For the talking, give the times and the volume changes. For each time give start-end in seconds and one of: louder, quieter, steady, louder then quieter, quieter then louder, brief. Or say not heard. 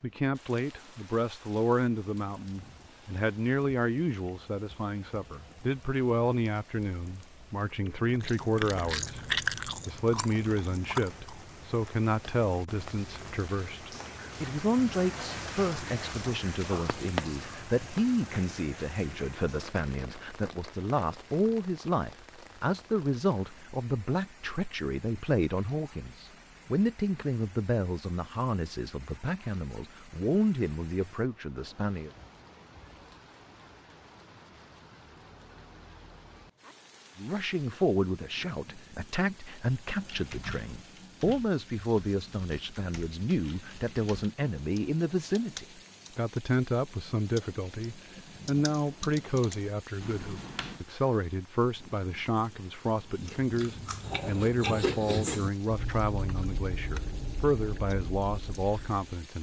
0.0-32.1 steady
37.1-59.3 steady.